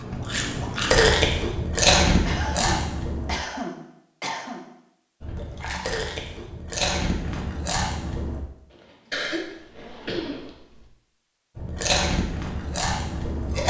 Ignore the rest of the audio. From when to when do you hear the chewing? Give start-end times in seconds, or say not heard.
0.0-3.4, 5.2-8.4, 11.6-13.6.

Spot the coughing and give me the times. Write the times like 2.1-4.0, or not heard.
2.2-4.7, 9.1-10.8.